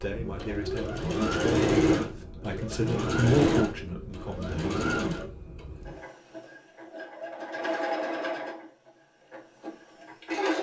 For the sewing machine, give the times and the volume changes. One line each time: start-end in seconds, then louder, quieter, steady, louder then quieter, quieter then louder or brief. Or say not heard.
0.0-10.5 quieter.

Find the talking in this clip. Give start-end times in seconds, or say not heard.
0.0-4.6.